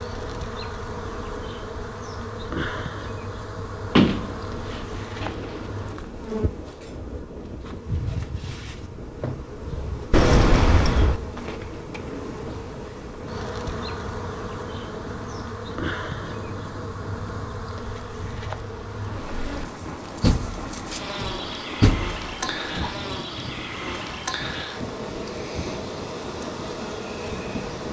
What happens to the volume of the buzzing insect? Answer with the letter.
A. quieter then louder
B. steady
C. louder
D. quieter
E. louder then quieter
B.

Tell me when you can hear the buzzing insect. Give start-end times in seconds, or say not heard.
0.0-27.8.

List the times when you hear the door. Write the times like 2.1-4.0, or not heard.
4.0-5.6, 10.1-11.2, 20.2-22.9.